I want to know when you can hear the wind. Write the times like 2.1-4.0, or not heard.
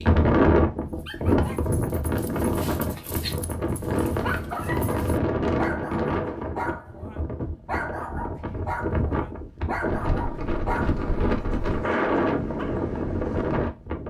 0.0-14.0.